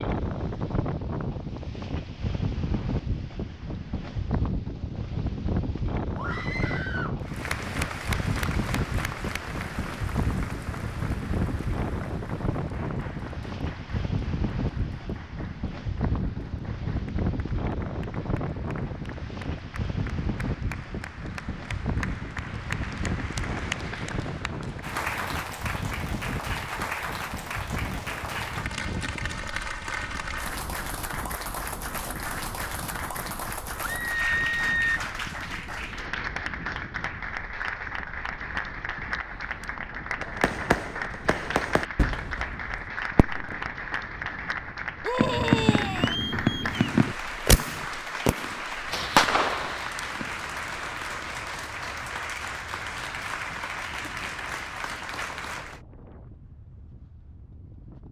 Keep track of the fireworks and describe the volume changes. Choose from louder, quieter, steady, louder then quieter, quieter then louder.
louder.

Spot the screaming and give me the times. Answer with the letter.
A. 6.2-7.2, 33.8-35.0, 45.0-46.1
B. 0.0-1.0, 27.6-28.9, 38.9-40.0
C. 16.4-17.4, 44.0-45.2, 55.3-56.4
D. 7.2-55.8
A.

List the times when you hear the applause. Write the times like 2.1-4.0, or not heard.
7.2-55.8.